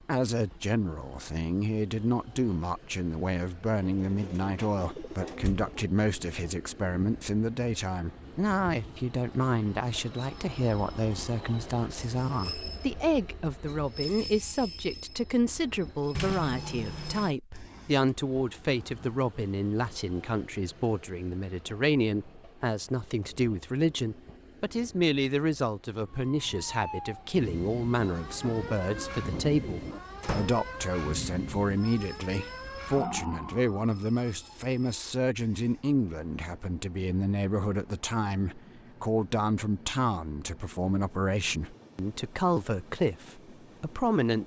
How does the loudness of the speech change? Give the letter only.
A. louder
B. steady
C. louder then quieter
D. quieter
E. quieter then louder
B.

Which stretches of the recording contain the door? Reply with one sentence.
The door can be heard from 5.2 to 5.7 s, from 16.1 to 17.4 s and from 30.2 to 30.6 s.